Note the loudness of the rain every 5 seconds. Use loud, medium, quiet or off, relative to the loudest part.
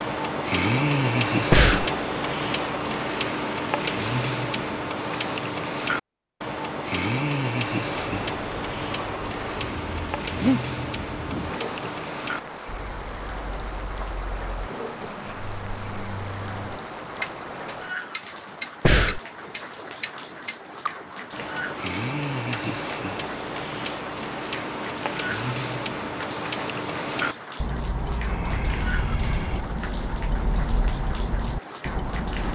off, loud, loud, loud, loud, loud, loud.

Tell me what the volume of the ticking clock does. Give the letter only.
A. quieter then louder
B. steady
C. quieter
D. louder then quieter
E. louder
A.